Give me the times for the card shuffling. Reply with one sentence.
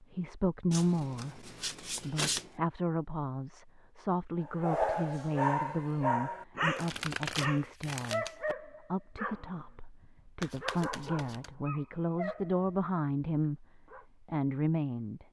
You can hear the card shuffling from 0.7 to 2.5 s, from 6.8 to 8.6 s and from 10.4 to 11.5 s.